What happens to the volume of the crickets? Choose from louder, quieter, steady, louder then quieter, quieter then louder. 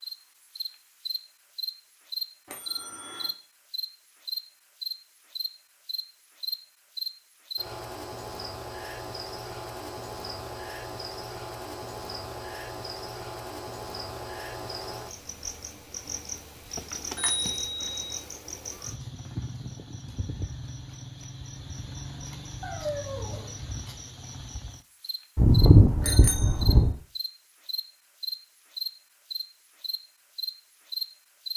quieter then louder.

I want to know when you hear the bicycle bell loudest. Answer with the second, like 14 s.
26 s.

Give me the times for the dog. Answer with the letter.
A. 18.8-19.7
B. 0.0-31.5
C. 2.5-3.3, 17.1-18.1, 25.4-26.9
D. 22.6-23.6
D.